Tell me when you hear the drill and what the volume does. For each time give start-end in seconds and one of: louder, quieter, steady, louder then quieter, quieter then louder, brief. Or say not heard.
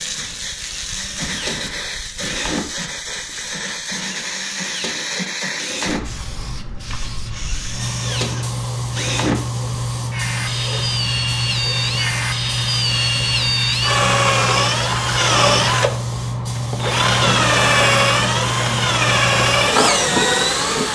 0.1-20.9 louder.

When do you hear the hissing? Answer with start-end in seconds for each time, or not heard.
0.0-20.9.